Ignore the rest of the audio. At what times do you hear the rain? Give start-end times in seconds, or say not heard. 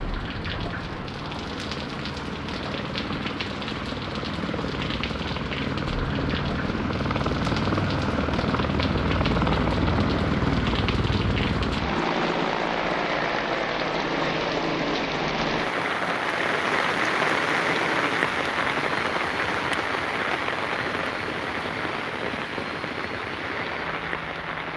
0.0-24.7.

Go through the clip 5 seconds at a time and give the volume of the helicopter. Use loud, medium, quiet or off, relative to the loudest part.
medium, loud, loud, medium, quiet.